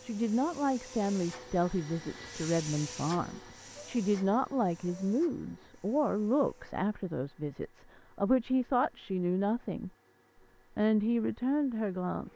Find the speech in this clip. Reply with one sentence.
You can hear the speech from 0.0 to 9.9 s and from 10.8 to 12.3 s.